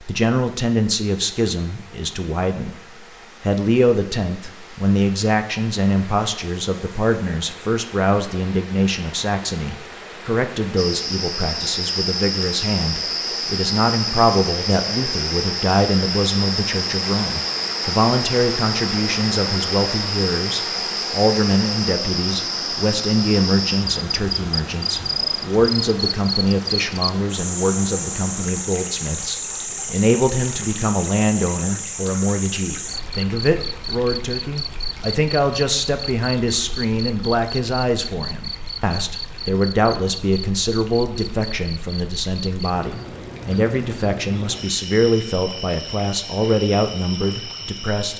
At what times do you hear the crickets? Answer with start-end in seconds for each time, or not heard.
10.8-48.1.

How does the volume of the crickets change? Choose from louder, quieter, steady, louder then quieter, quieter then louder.
quieter.